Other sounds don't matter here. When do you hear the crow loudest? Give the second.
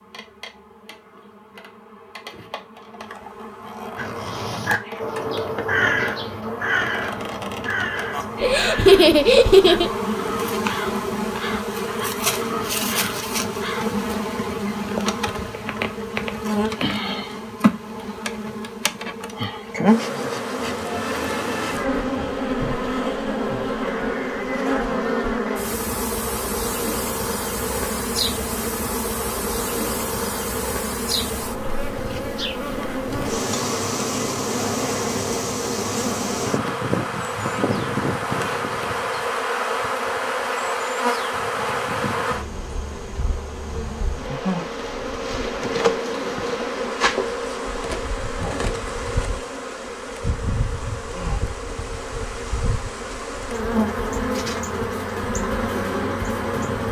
6 s.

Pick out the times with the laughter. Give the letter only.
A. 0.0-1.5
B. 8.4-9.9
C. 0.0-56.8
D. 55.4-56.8
B.